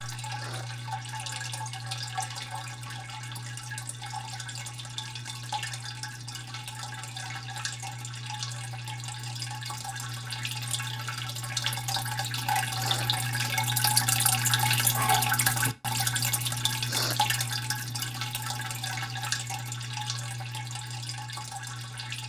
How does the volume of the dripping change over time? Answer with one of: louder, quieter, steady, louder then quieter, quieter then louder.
louder then quieter.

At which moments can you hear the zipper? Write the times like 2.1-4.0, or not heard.
not heard.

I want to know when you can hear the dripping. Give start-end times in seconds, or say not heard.
0.0-22.2.